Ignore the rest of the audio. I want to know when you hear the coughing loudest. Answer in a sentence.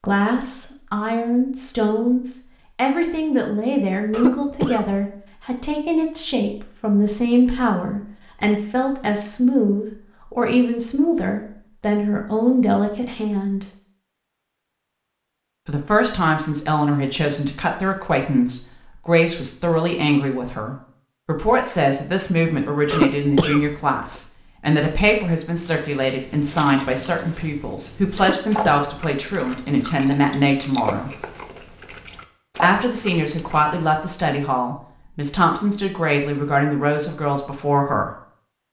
The volume of the coughing peaks at 23 seconds.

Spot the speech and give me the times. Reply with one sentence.
The speech can be heard from 0.0 to 13.7 s, from 15.7 to 31.1 s and from 32.6 to 38.1 s.